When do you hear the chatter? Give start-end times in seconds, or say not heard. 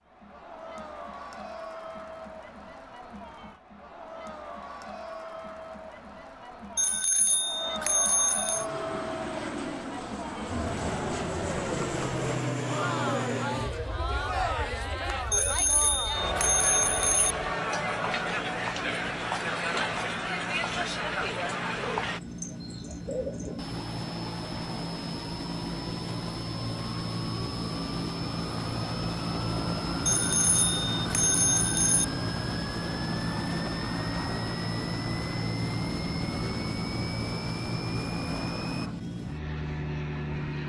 0.0-22.2.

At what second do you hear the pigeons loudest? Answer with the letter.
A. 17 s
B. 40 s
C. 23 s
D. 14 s
C.